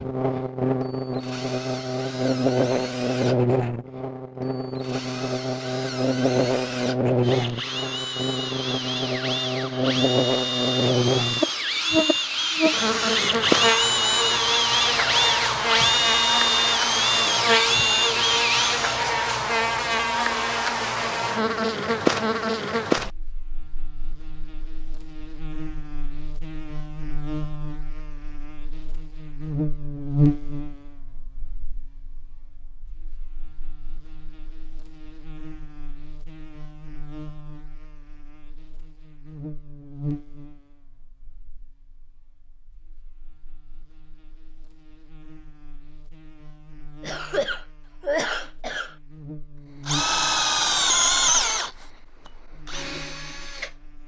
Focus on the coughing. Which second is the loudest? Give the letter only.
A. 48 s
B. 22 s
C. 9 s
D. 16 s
A.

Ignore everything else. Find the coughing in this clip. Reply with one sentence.
The coughing can be heard from 47.0 to 49.0 s.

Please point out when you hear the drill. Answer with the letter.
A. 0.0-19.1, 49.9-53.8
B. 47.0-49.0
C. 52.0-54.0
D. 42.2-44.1
A.